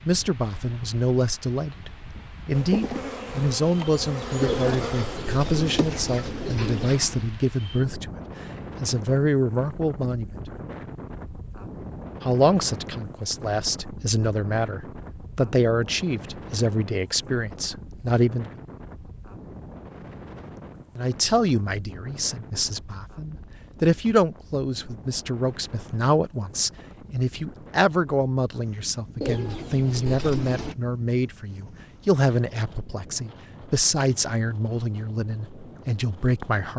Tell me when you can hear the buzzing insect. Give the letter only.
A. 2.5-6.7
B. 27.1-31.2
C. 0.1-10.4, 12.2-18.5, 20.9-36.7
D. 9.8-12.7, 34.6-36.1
A.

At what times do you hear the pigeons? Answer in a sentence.
The pigeons can be heard from 4.4 to 7.3 s and from 29.2 to 30.8 s.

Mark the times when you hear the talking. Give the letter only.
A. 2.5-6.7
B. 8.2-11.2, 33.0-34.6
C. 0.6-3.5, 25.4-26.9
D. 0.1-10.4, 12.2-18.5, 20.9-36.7
D.